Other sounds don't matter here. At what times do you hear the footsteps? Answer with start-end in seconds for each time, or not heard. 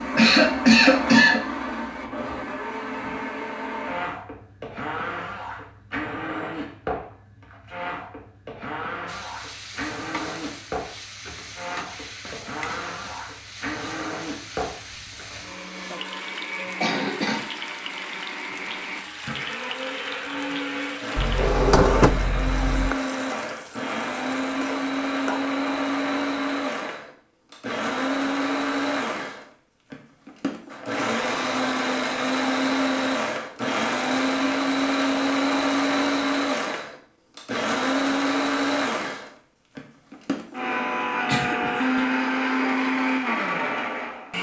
not heard.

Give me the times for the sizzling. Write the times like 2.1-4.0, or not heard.
9.1-25.4.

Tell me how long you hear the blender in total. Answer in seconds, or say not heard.
44 s.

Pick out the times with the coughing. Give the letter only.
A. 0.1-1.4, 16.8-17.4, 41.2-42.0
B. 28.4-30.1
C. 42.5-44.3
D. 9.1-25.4
A.